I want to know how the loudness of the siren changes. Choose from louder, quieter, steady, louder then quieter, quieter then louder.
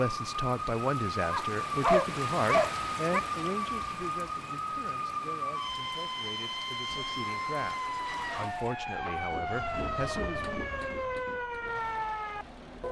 steady.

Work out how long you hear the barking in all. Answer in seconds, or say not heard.
2 s.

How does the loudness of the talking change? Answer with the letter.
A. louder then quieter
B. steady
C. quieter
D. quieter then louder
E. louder
D.